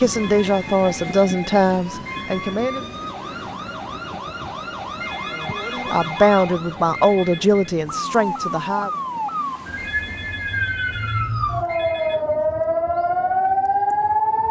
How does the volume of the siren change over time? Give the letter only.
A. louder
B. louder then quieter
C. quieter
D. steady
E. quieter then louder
A.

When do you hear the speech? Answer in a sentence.
You can hear the speech from 0.0 to 2.9 s and from 5.3 to 8.9 s.